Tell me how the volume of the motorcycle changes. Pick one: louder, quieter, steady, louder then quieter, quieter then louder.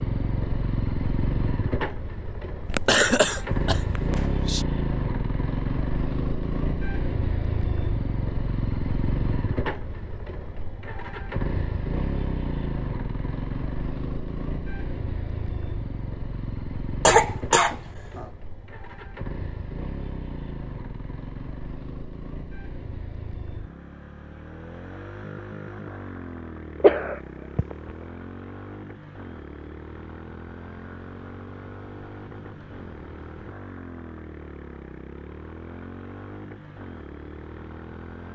quieter.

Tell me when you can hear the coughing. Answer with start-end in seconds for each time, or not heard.
2.6-4.7, 17.1-18.2, 26.8-27.8.